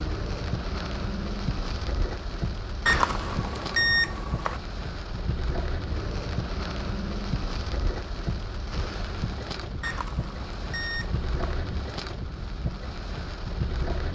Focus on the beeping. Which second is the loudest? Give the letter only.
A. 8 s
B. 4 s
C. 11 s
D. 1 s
B.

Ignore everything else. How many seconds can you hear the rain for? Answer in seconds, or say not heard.
14 s.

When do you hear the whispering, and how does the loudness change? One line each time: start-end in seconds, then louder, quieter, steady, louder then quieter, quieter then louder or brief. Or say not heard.
not heard.